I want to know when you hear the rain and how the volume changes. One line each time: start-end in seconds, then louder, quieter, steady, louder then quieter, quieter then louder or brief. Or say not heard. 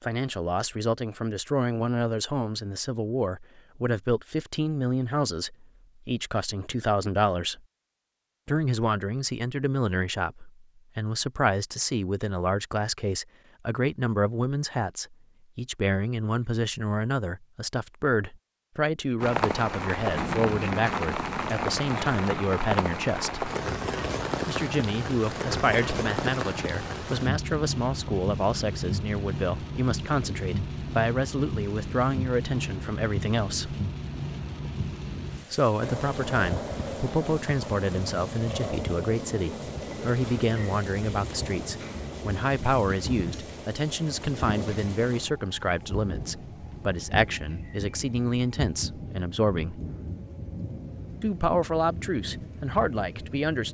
19.2-53.6 quieter.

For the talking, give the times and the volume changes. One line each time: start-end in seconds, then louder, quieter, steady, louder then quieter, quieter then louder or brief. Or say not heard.
0.0-7.6 steady
8.4-23.5 steady
24.4-33.8 steady
35.5-49.8 steady
51.2-53.6 brief.